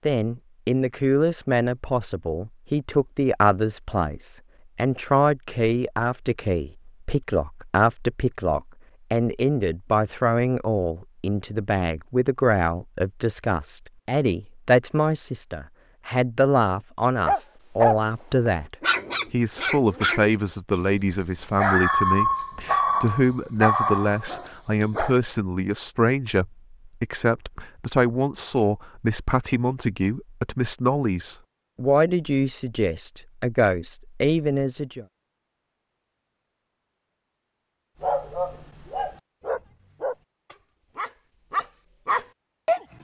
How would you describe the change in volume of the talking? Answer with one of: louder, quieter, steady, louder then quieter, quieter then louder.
steady.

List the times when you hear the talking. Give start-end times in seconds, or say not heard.
0.1-35.0.